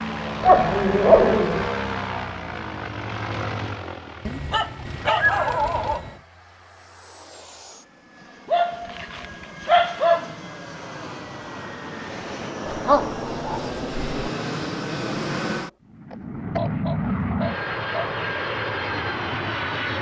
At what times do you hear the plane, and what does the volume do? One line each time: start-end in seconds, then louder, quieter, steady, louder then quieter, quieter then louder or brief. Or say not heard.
0.0-19.9 quieter then louder.